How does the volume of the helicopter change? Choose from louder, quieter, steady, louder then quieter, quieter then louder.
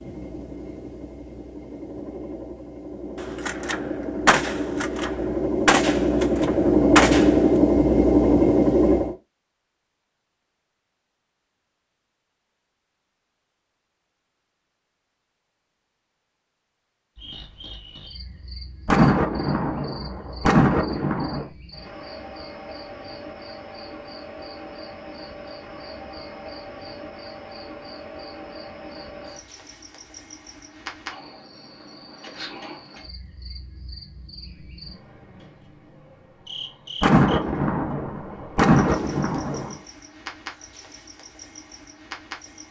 louder.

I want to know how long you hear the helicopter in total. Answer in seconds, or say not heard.
9 s.